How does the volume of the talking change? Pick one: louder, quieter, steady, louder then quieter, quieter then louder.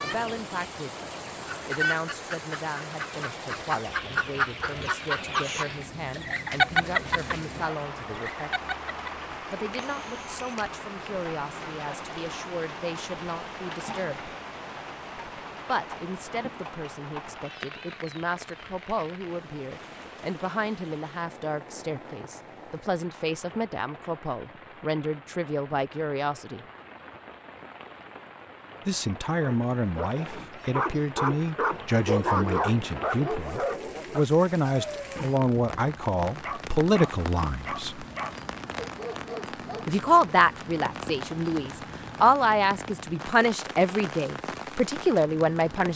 louder.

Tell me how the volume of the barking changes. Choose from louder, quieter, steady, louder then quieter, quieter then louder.
louder then quieter.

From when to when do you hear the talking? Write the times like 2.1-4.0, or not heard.
0.0-8.7, 9.5-14.3, 15.7-26.6, 28.9-38.0, 39.9-45.9.